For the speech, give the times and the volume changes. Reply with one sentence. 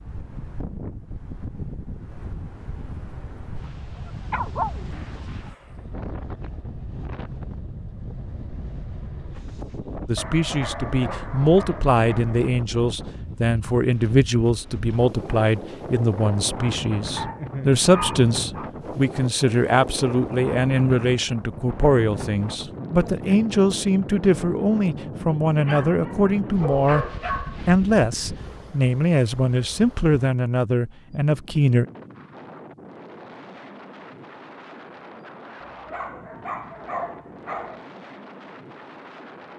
The speech can be heard from 10.1 to 31.9 s, at a steady volume.